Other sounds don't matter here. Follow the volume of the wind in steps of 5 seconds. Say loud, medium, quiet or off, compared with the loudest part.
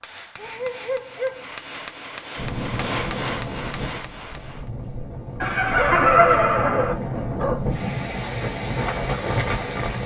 medium, loud.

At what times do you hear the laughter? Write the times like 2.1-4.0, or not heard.
5.4-7.0.